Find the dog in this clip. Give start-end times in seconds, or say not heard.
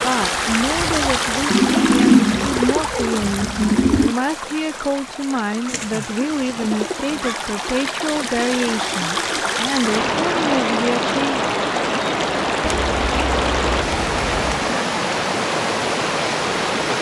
not heard.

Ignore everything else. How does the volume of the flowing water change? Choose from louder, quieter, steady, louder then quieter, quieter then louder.
quieter then louder.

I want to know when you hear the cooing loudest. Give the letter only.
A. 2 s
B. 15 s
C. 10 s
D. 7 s
A.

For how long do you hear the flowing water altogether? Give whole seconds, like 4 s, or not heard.
17 s.